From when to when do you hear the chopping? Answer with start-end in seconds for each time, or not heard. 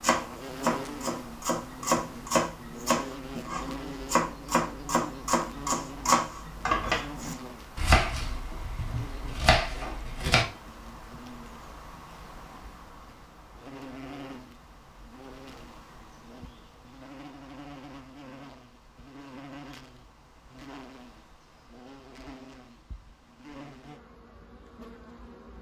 0.0-10.4.